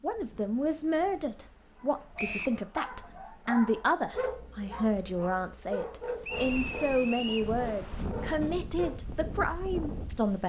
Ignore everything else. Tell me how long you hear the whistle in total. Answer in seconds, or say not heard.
2 s.